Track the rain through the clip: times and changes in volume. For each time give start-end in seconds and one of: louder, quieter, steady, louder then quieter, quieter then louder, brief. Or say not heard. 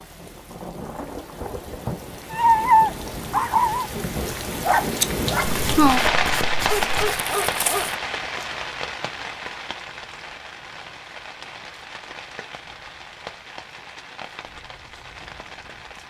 0.0-16.0 louder then quieter.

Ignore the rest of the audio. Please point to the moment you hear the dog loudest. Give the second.
3 s.